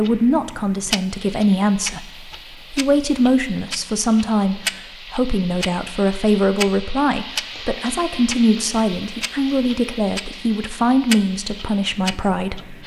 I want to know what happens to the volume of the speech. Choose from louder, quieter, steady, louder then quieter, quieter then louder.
steady.